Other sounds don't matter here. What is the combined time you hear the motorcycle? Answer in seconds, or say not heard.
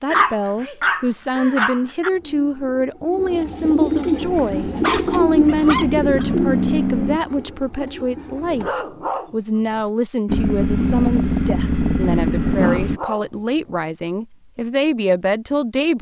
6 s.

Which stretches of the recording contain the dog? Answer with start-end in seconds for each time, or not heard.
0.1-2.1, 4.3-6.3, 8.4-9.9, 12.4-13.8.